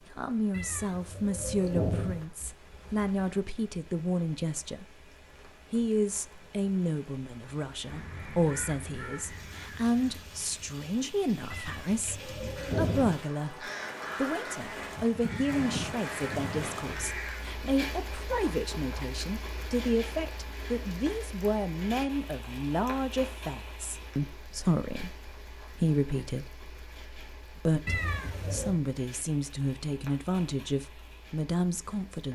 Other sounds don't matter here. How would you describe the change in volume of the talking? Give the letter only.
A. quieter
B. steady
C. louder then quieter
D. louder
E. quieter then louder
B.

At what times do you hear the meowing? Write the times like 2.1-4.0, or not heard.
0.5-2.2, 11.5-13.2, 27.9-28.8.